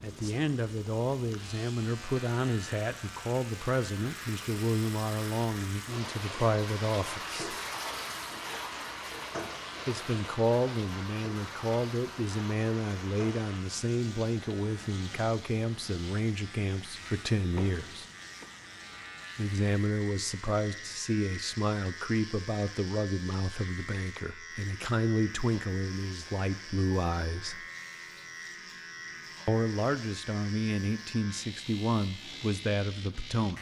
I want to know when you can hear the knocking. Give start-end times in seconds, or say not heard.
17.6-18.5.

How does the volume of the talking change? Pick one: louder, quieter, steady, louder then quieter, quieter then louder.
steady.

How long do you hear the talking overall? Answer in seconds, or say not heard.
28 s.